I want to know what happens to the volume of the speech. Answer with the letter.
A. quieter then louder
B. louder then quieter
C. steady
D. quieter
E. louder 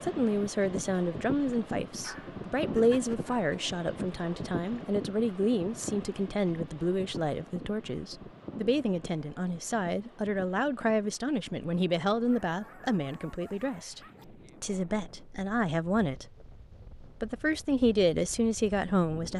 C.